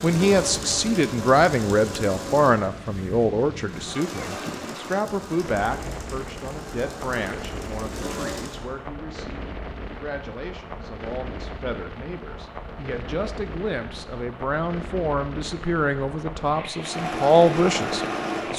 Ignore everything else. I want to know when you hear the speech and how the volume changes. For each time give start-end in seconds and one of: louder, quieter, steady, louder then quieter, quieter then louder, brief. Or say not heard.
0.0-18.5 quieter then louder.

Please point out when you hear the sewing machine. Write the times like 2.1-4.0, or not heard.
0.0-8.7, 16.8-18.5.